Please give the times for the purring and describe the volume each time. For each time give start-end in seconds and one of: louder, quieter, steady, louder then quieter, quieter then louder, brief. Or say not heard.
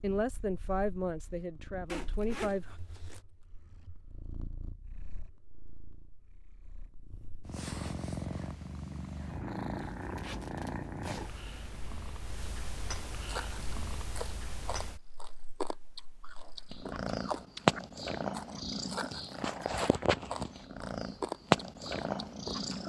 0.0-22.8 louder.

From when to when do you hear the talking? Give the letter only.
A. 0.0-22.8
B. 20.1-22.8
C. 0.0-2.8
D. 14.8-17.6
C.